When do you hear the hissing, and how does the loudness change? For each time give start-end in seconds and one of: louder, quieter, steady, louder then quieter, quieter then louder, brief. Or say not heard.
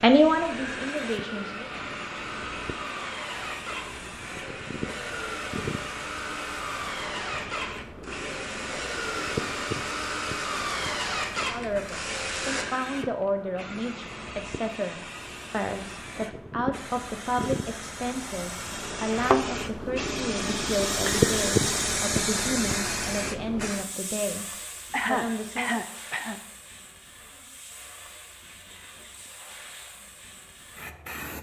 0.0-31.3 louder then quieter.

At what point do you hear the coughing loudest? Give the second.
25 s.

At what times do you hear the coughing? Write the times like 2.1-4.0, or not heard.
24.9-26.4.